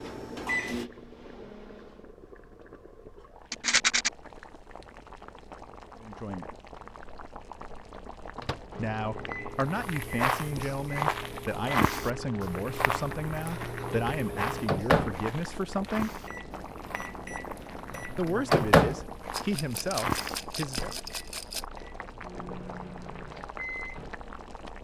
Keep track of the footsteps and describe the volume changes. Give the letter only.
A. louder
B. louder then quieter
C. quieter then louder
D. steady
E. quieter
C.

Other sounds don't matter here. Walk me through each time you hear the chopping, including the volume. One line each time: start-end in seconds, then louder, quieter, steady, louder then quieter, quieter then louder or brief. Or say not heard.
not heard.